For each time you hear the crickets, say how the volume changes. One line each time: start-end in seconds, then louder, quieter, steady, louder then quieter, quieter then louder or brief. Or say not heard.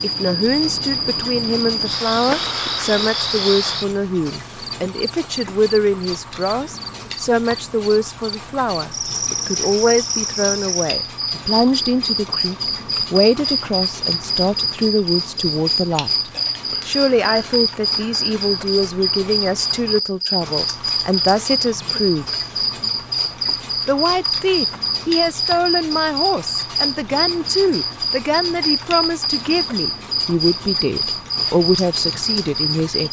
0.0-33.0 steady.